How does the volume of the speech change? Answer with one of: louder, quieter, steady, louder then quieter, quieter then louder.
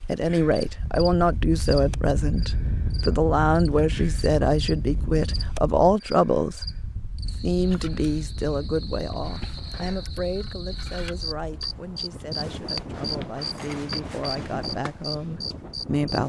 quieter.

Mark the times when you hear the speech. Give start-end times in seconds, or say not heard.
0.1-16.2.